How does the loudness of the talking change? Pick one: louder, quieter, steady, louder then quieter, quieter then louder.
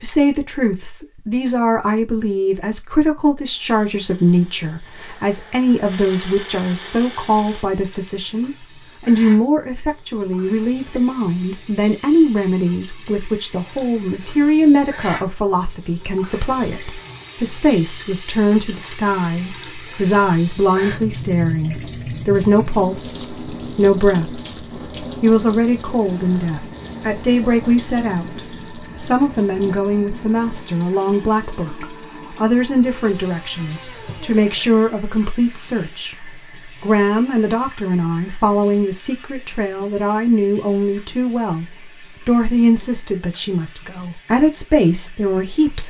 steady.